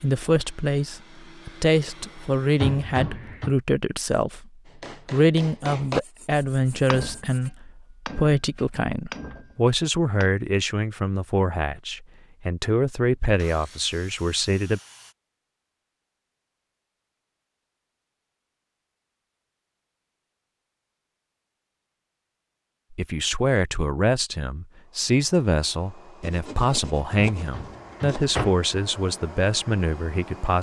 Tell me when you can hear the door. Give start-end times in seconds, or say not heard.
2.5-3.5, 27.4-28.6.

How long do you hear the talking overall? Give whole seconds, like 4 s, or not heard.
22 s.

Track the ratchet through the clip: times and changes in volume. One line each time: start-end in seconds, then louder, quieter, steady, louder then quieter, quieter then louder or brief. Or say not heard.
not heard.